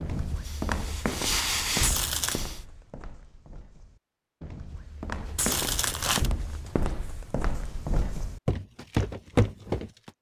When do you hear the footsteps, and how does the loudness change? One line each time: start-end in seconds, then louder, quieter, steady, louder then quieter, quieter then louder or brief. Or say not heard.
0.0-10.1 quieter then louder.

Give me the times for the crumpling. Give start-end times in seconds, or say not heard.
1.8-2.5, 5.3-6.3.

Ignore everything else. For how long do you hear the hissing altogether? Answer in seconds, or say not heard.
2 s.